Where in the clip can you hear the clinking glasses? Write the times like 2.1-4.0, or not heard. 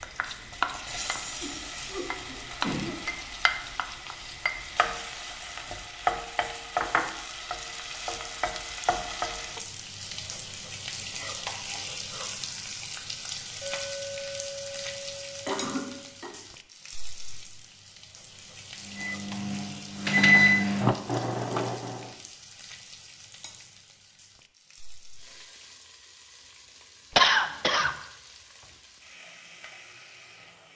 13.6-16.1.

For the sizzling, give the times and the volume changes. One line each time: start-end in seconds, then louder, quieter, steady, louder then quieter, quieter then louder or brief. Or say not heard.
0.0-30.7 quieter.